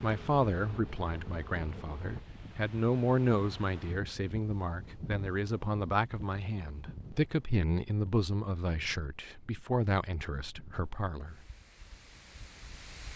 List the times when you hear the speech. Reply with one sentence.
You can hear the speech from 0.0 to 11.4 s.